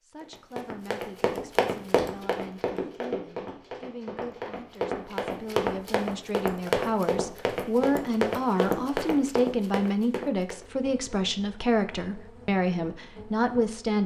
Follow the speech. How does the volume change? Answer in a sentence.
The volume of the speech goes up.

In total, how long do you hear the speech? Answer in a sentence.
You can hear the speech for 14 seconds altogether.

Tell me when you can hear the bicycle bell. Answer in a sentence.
The bicycle bell can't be heard in this clip.